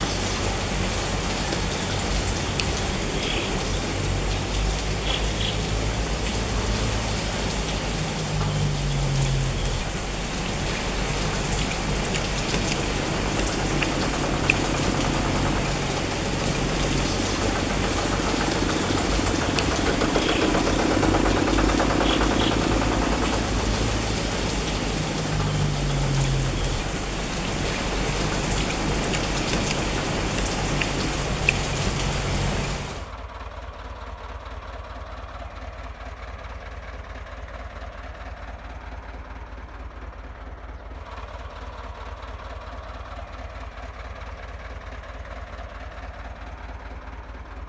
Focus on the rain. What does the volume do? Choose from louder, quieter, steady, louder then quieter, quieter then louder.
steady.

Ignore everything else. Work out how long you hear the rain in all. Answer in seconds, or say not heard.
33 s.